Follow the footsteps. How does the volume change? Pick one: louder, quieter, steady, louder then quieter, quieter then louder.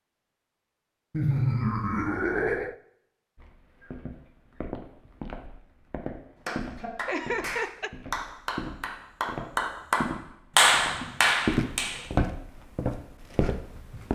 louder.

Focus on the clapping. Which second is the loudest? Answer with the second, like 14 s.
11 s.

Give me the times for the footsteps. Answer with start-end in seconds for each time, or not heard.
3.4-14.1.